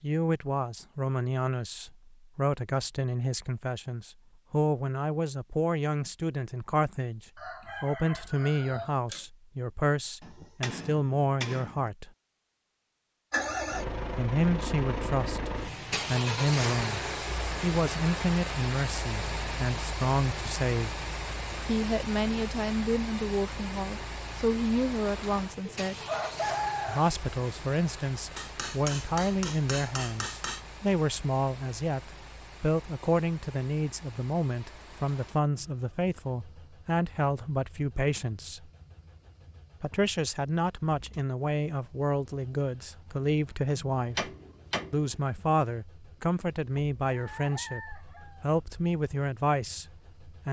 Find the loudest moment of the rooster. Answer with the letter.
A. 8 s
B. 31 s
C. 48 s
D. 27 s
D.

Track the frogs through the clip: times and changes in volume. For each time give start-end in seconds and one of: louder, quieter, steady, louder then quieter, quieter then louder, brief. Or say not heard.
not heard.